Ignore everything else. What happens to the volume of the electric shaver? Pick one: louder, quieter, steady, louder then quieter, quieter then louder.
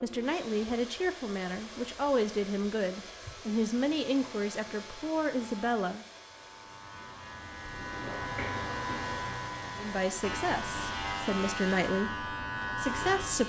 louder.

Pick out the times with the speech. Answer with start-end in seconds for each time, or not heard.
0.0-6.0, 9.8-13.4.